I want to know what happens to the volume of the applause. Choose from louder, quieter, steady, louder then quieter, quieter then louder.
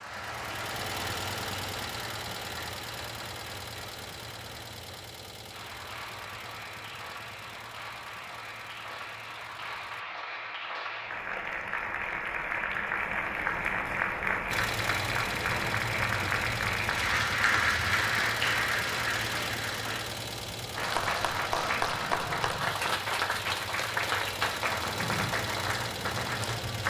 louder.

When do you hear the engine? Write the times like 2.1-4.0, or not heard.
0.0-10.1, 14.5-26.8.